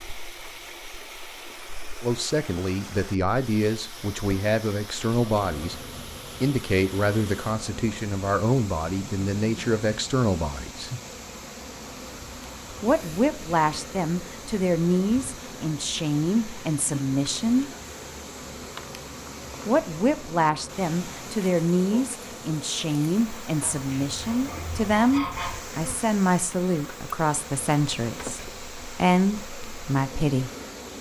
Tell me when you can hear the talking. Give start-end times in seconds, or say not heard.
2.0-5.8, 6.4-10.9, 12.8-17.7, 19.6-30.5.